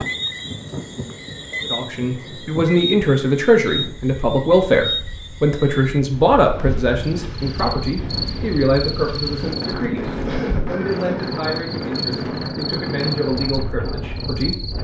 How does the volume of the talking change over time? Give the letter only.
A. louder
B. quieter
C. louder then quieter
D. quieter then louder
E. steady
B.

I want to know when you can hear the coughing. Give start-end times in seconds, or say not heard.
10.2-11.3.